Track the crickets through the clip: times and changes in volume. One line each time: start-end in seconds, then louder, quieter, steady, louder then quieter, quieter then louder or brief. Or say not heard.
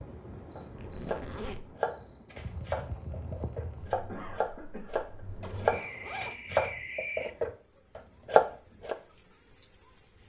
0.0-10.2 louder.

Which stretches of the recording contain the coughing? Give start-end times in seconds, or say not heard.
4.0-5.9.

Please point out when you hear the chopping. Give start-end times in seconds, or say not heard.
0.6-8.9.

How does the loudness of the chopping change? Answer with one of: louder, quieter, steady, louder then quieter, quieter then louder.
louder.